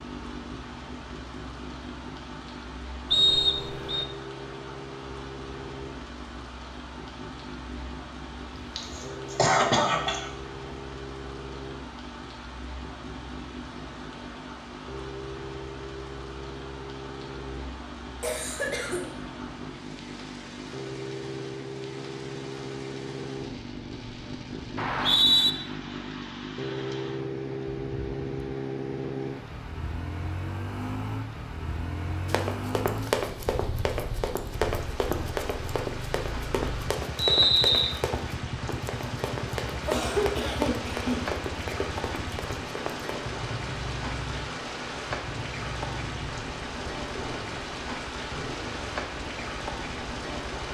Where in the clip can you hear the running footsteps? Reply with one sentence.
You can hear the running footsteps from 32.2 to 43.1 s.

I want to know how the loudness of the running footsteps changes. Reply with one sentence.
The volume of the running footsteps goes down.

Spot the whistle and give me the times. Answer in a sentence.
The whistle can be heard from 3.1 to 4.0 s, from 24.8 to 25.5 s and from 37.1 to 38.0 s.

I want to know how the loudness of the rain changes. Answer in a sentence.
The volume of the rain goes up.